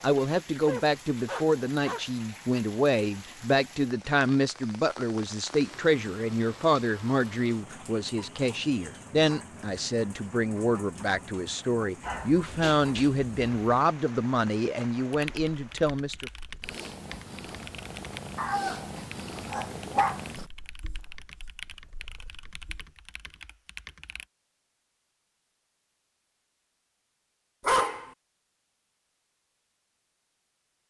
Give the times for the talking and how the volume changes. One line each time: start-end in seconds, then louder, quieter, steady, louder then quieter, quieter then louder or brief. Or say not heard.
0.0-16.3 steady.